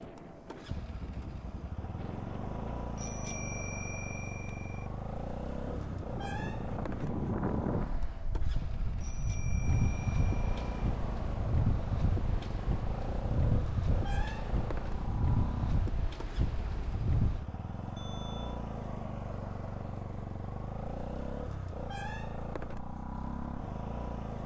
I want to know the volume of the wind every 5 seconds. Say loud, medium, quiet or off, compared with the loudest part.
quiet, loud, loud, loud, off.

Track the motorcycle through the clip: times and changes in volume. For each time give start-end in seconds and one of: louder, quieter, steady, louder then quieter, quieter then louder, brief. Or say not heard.
0.0-24.4 steady.